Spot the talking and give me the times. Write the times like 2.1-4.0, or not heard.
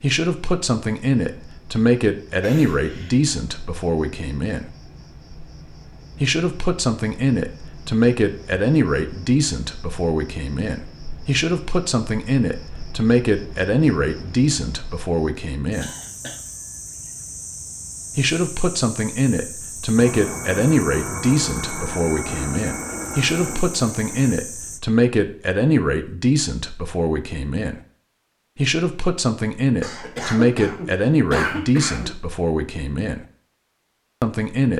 0.0-4.7, 6.2-15.9, 18.1-27.8, 28.6-33.2, 34.2-34.7.